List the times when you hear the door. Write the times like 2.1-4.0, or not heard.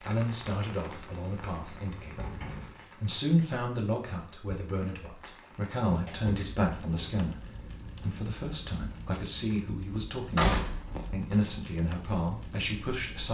0.8-2.8, 5.2-7.0, 10.3-11.3.